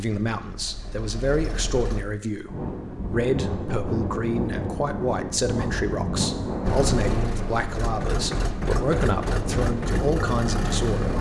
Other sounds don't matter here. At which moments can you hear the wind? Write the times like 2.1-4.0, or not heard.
2.5-11.1.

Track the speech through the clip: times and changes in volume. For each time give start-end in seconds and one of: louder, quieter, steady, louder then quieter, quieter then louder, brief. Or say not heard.
0.0-11.1 steady.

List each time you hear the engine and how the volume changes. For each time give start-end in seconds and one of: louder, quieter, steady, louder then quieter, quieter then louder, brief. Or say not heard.
0.2-2.0 brief
6.6-11.1 steady.